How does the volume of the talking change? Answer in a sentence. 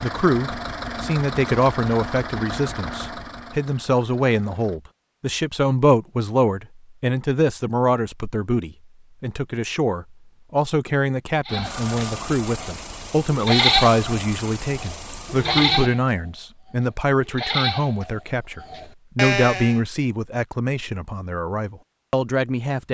The loudness of the talking stays about the same.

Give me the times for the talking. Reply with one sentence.
You can hear the talking from 0.0 to 22.8 s.